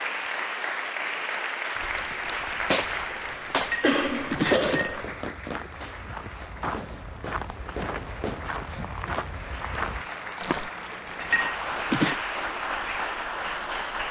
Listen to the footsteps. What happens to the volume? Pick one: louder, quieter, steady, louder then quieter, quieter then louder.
louder.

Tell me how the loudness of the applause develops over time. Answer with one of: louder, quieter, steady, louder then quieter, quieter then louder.
quieter then louder.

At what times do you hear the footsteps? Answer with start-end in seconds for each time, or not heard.
1.8-10.7.